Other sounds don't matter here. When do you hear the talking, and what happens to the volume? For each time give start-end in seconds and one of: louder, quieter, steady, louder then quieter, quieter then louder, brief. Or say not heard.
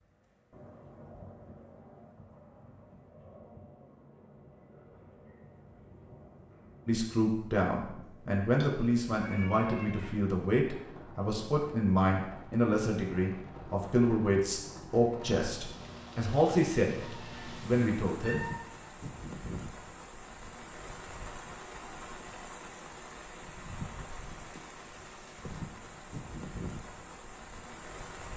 6.8-18.4 steady.